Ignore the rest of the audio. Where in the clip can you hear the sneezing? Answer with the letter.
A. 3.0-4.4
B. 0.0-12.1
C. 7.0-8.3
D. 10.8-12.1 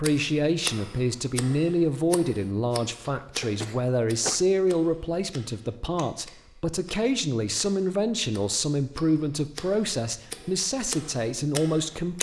A.